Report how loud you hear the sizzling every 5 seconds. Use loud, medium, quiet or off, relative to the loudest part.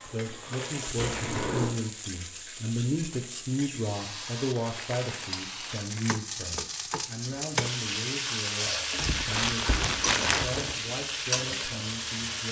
medium, loud, loud.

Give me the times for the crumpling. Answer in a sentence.
You can hear the crumpling from 0.4 to 1.6 s, from 4.5 to 6.2 s and from 8.9 to 10.8 s.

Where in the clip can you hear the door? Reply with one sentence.
You can hear the door from 0.9 to 1.8 s.